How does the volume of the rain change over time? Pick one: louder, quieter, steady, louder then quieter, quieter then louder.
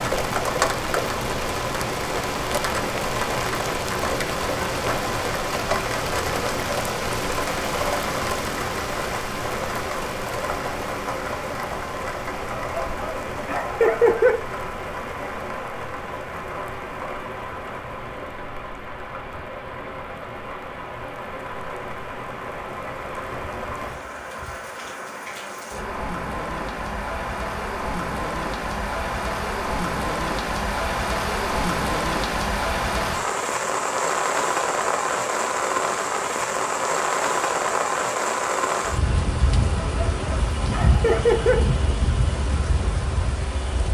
quieter then louder.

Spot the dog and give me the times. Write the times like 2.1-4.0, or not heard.
12.6-14.3, 39.8-41.5.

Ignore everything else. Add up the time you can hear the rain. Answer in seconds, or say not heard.
44 s.